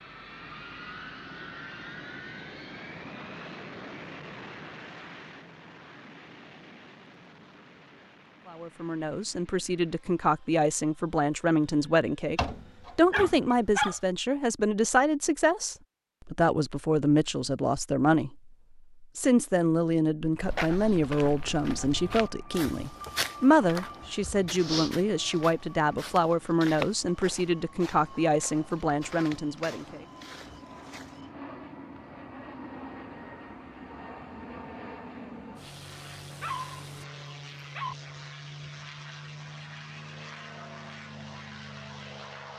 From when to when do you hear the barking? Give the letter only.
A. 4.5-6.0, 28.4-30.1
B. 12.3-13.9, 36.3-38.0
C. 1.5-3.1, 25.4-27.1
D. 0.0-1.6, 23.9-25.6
B.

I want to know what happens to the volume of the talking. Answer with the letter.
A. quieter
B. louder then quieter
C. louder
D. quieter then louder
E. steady
E.